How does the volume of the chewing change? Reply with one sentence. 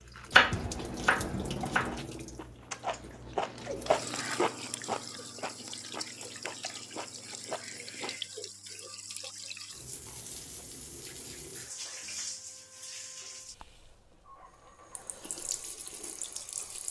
The loudness of the chewing goes up, then down.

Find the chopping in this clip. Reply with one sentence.
The chopping can be heard from 0.3 to 2.0 s.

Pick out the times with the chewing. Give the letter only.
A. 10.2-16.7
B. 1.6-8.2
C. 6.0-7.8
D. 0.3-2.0
B.